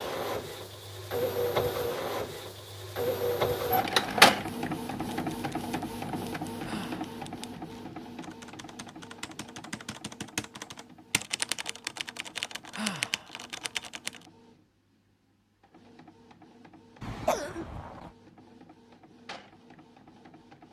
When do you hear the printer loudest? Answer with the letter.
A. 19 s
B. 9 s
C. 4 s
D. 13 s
C.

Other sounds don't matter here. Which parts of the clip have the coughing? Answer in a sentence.
The coughing can be heard from 17.0 to 18.1 s.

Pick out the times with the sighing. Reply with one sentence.
The sighing can be heard from 6.6 to 7.1 s and from 12.7 to 13.3 s.